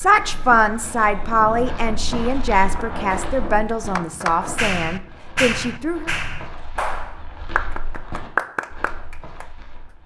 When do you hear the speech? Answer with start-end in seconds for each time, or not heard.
0.0-6.1.